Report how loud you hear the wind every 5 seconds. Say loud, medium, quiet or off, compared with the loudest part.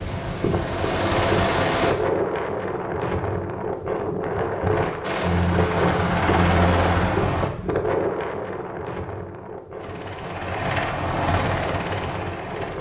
loud, loud, medium.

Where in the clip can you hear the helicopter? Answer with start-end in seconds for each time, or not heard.
0.0-1.9, 5.0-7.5, 9.8-12.7.